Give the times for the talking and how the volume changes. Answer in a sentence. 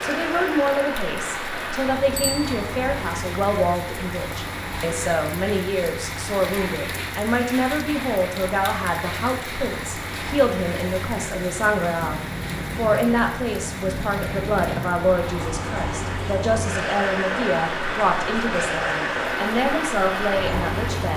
The talking can be heard from 0.0 to 21.1 s, at a steady volume.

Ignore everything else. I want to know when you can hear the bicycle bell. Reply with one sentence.
You can hear the bicycle bell from 2.1 to 2.6 s.